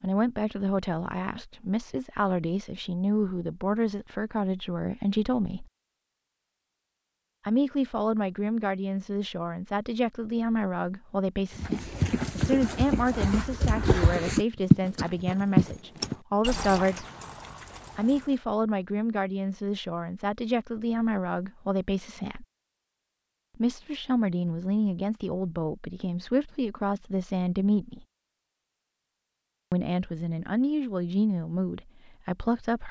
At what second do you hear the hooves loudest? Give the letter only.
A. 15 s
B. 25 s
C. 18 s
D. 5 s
A.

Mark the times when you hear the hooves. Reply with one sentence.
You can hear the hooves from 11.6 to 18.4 s.